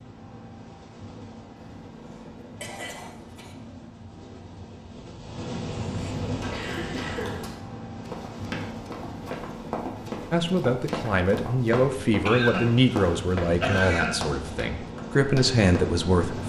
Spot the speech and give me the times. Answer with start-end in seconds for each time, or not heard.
10.3-16.4.